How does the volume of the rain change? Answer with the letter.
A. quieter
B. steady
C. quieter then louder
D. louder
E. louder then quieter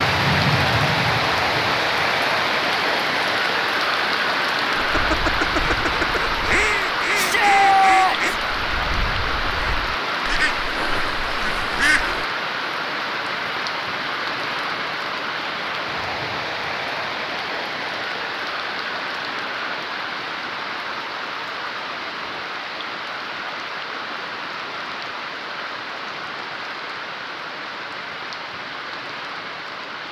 A.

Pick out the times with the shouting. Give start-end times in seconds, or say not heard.
7.2-8.4.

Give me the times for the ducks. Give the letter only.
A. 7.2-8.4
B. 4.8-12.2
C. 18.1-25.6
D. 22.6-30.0
B.